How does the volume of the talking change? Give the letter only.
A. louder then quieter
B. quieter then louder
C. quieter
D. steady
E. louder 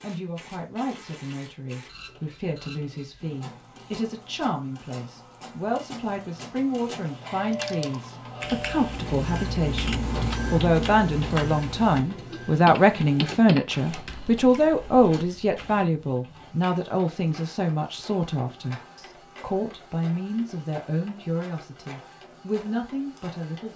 A.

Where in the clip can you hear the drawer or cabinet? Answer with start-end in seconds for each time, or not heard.
not heard.